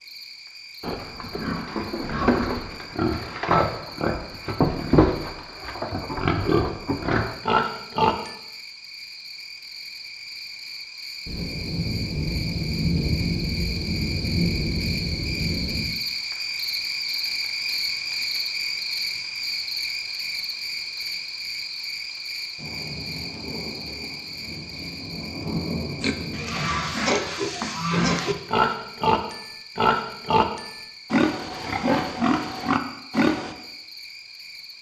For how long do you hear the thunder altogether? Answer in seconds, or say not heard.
9 s.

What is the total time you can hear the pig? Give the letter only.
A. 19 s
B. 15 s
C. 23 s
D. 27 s
B.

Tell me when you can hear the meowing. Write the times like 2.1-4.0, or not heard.
not heard.